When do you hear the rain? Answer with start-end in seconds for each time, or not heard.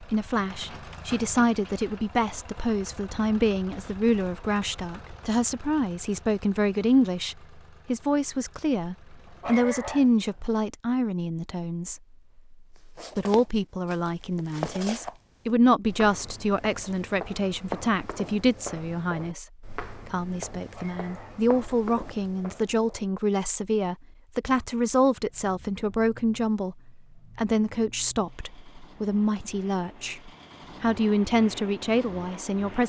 not heard.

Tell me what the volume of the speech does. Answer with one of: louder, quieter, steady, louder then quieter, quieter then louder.
steady.